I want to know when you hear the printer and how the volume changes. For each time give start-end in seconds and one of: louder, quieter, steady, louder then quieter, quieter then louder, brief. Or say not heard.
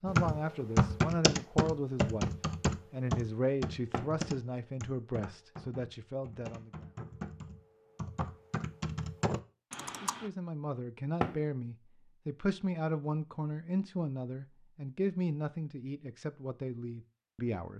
not heard.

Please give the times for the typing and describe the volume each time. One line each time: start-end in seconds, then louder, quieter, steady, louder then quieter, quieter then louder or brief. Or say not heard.
0.1-10.3 quieter then louder.